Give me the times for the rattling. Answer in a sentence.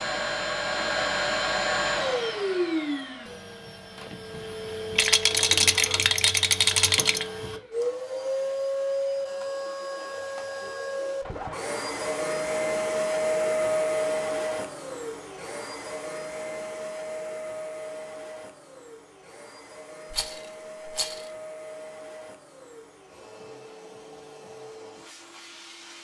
The rattling can be heard from 5.0 to 7.2 s and from 20.1 to 21.3 s.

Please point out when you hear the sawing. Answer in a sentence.
The sawing can't be heard in this clip.